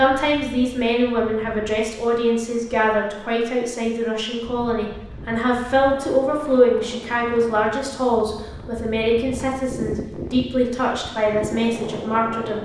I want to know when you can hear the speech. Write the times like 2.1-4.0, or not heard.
0.0-12.6.